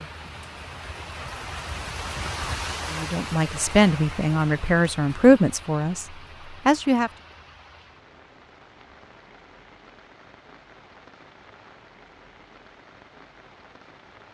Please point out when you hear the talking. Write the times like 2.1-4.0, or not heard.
2.9-7.1.